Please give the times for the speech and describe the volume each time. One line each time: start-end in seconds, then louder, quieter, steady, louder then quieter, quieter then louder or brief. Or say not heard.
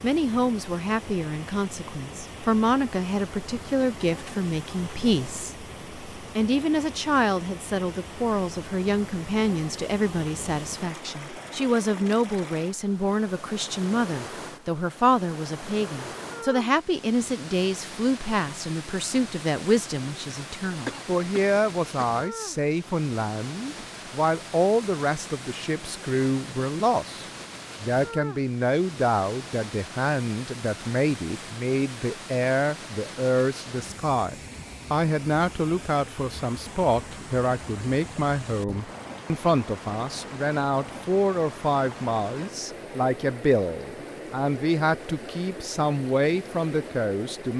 0.0-47.5 steady.